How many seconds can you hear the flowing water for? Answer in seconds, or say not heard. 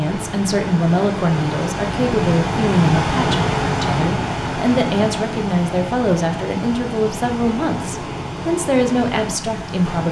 10 s.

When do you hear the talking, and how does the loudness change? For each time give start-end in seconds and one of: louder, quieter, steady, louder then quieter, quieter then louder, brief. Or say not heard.
0.0-10.0 steady.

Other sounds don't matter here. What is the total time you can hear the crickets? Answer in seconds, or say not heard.
not heard.